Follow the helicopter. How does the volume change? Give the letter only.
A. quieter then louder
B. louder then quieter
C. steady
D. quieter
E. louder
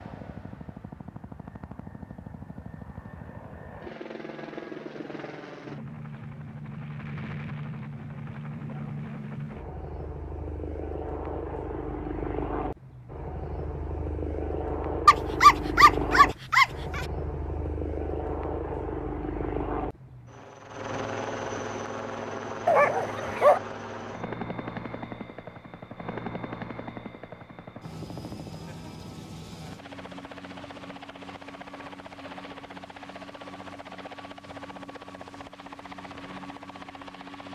B.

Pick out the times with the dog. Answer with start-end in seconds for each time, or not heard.
15.1-17.1, 22.6-23.6.